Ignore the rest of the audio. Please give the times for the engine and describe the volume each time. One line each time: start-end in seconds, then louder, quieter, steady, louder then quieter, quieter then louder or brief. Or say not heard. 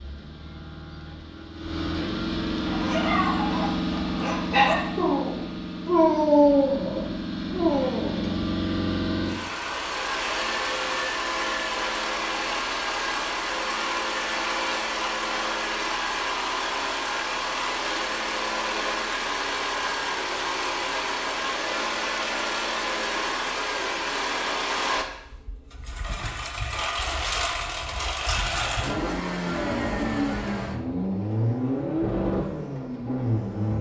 0.0-33.7 steady.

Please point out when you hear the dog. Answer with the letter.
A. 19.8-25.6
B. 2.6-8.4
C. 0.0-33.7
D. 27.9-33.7
B.